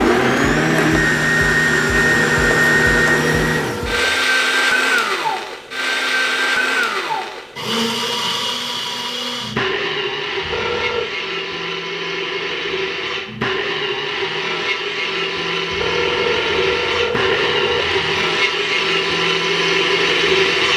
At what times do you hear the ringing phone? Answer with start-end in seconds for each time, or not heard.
2.1-4.2, 10.4-11.1, 15.7-18.1.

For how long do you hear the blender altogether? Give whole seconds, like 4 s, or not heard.
21 s.